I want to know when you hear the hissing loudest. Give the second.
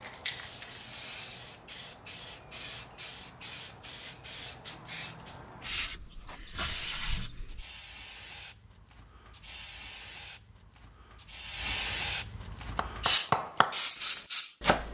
12 s.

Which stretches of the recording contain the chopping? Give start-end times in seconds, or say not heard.
12.5-14.8.